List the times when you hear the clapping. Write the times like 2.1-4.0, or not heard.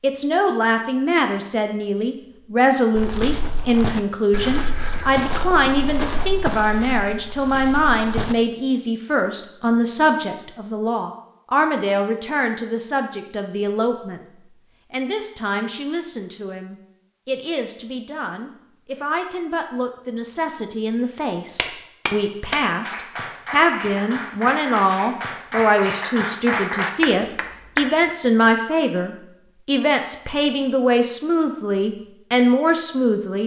21.6-27.9.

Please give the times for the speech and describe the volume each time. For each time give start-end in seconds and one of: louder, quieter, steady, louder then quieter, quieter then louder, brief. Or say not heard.
0.0-33.4 quieter then louder.